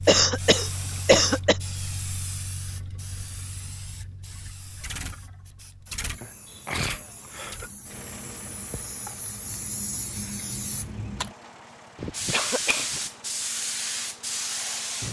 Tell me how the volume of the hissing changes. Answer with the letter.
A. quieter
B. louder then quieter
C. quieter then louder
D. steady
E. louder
C.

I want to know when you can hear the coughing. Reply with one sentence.
You can hear the coughing from 0.1 to 1.6 s, from 6.2 to 7.7 s and from 11.9 to 13.0 s.